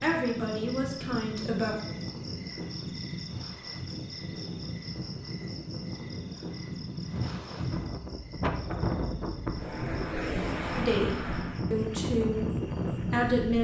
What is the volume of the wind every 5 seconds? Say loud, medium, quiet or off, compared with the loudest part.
medium, loud, loud.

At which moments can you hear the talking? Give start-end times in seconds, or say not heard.
0.0-1.8, 10.8-13.5.